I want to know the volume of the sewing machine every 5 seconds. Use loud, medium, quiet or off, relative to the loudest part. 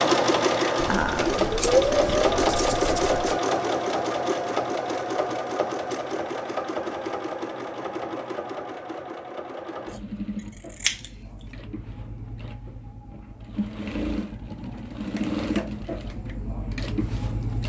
loud, medium, quiet, medium.